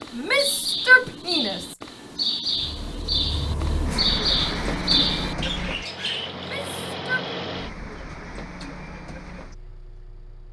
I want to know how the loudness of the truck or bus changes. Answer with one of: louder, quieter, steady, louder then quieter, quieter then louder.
quieter.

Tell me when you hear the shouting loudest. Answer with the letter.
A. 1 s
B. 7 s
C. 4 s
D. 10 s
A.